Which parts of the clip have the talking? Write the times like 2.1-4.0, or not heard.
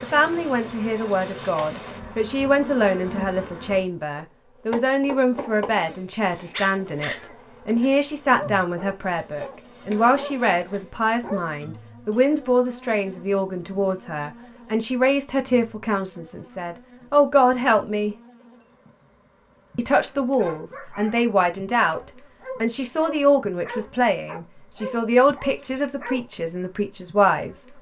0.0-18.1, 19.8-27.7.